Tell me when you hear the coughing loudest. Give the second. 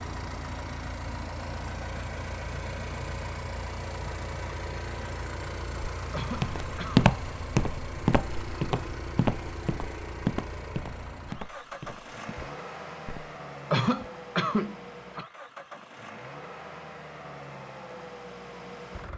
14 s.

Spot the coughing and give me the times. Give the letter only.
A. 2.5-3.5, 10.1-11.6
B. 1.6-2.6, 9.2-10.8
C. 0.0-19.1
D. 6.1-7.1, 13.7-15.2
D.